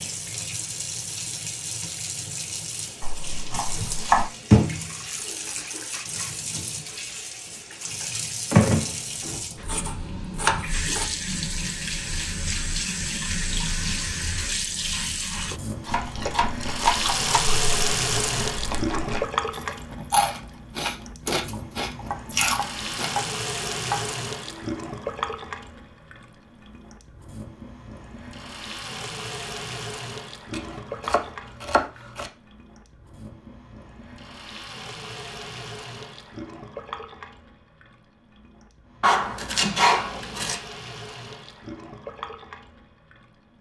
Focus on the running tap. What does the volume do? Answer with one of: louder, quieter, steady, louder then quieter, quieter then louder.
quieter.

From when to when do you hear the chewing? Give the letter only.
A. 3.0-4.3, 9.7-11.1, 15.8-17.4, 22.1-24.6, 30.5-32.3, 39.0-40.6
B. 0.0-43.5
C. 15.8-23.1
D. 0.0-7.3
C.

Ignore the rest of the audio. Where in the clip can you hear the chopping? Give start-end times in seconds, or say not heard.
3.0-4.3, 9.7-11.1, 15.8-17.4, 22.1-24.6, 30.5-32.3, 39.0-40.6.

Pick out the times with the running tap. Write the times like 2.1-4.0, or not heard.
0.0-43.5.